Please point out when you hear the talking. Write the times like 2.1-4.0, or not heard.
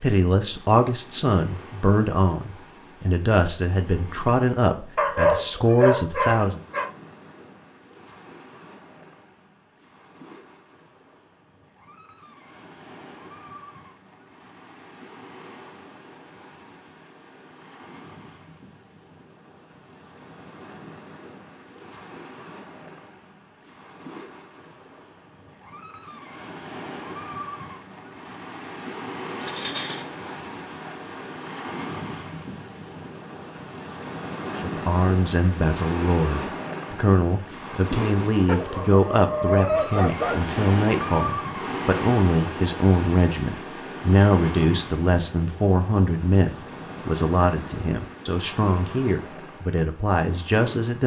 0.0-6.6, 34.6-51.0.